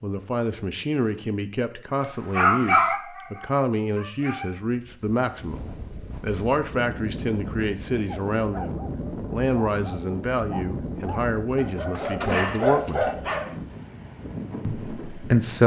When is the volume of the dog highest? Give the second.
3 s.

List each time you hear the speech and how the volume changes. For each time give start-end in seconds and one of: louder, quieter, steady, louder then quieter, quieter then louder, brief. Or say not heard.
0.0-13.1 steady
14.6-15.6 brief.